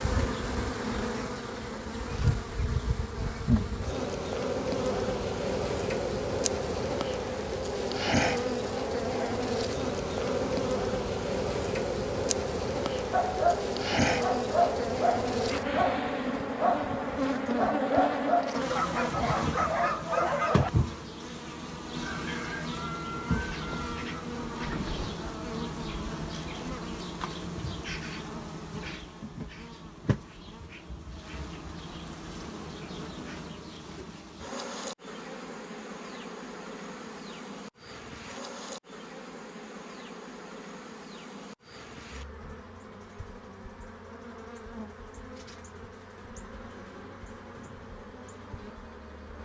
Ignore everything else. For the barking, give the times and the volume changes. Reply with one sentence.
The barking can be heard from 13.1 to 20.7 s, at a steady volume.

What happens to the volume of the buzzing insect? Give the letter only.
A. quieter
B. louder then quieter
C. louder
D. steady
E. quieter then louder
A.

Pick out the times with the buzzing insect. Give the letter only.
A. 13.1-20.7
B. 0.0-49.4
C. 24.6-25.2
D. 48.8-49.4
B.